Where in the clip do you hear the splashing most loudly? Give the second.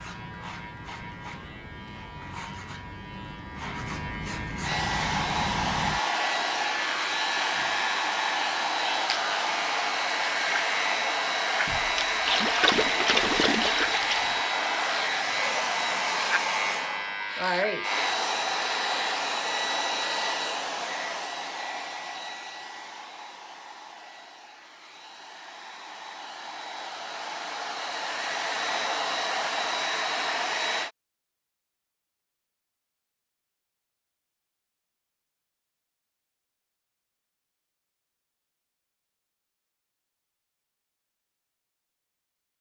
13 s.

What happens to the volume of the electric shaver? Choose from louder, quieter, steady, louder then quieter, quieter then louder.
louder.